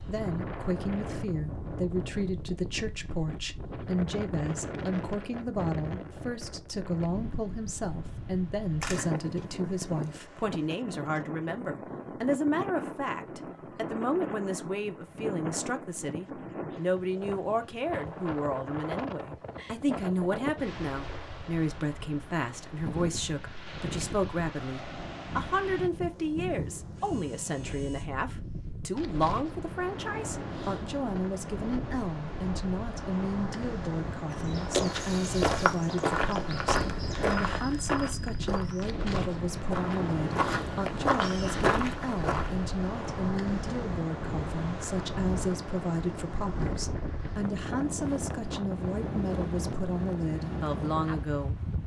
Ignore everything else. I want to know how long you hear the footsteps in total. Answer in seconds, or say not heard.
8 s.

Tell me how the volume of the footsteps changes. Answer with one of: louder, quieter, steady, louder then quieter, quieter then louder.
quieter then louder.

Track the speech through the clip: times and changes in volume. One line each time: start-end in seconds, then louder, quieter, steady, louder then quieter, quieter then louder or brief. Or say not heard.
0.0-51.6 steady.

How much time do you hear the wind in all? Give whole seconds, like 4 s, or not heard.
52 s.